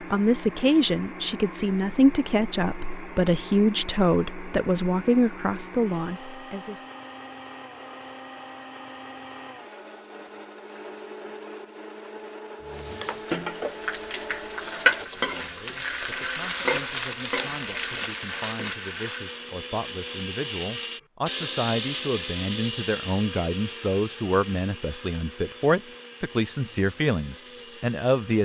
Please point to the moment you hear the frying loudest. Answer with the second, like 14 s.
15 s.